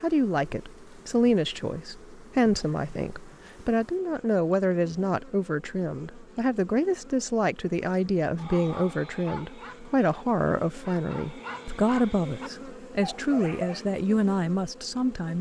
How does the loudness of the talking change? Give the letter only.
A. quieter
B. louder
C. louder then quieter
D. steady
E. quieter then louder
D.